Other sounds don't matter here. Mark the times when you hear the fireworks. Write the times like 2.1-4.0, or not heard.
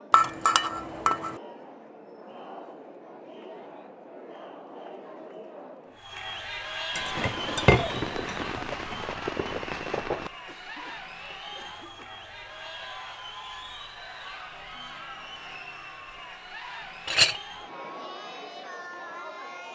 6.9-10.6.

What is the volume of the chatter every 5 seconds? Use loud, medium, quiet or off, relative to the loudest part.
medium, loud, loud, loud.